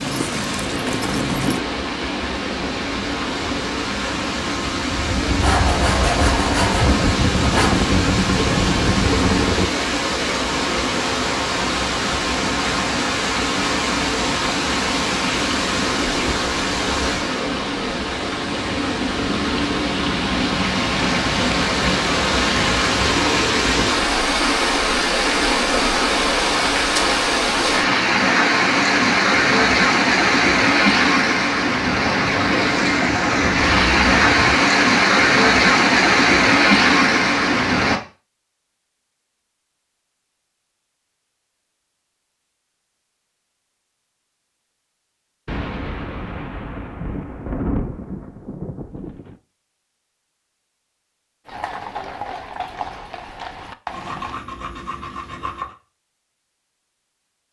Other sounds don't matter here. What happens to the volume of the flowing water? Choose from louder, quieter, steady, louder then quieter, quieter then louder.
louder.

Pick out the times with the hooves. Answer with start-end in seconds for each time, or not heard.
0.0-1.6, 51.5-54.4.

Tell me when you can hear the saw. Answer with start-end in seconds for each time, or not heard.
5.4-7.8, 53.9-55.8.